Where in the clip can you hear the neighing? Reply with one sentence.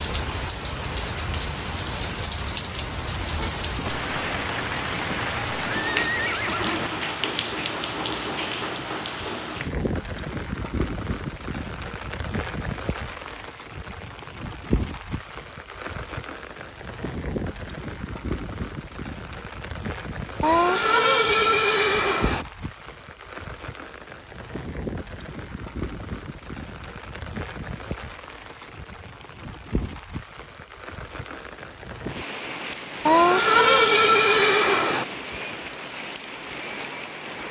You can hear the neighing from 5.0 to 6.9 s, from 20.4 to 22.4 s and from 33.0 to 35.0 s.